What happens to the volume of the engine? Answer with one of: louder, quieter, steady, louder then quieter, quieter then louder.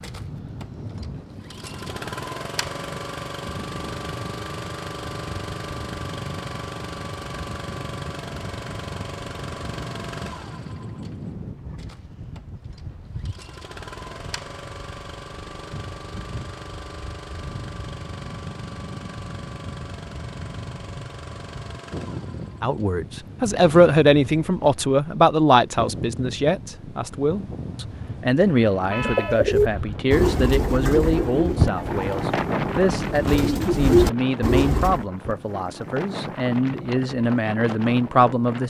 quieter.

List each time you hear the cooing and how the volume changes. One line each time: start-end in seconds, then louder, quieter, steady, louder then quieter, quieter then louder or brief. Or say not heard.
28.9-35.0 quieter then louder.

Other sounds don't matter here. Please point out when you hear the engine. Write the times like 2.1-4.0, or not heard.
0.0-23.9.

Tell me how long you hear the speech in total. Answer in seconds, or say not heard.
16 s.